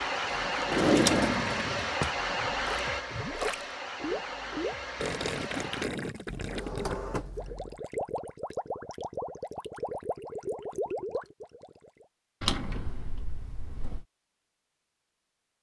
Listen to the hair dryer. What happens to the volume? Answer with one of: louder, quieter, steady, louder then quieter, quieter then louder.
quieter.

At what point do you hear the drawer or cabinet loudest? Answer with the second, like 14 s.
1 s.